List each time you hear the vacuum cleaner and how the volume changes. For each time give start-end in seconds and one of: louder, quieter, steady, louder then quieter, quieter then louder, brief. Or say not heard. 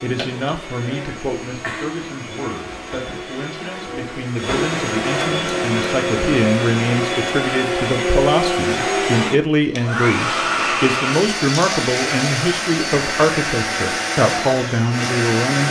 0.0-15.6 louder.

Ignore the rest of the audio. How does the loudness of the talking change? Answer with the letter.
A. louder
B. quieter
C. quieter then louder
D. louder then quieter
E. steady
A.